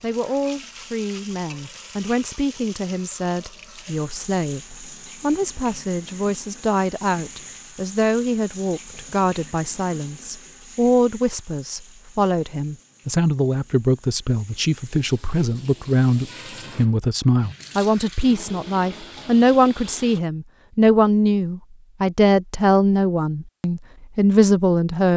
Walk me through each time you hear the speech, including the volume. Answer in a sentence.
The speech can be heard from 0.0 to 25.1 s, getting louder.